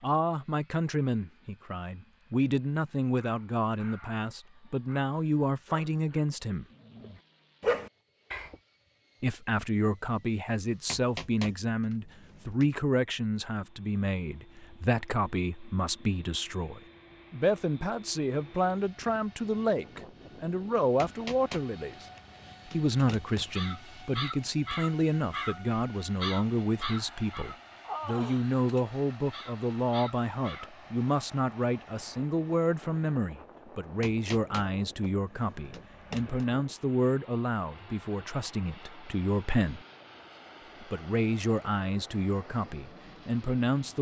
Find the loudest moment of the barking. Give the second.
8 s.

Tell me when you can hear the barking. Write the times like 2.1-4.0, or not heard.
3.1-8.6.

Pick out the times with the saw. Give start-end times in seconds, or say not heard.
not heard.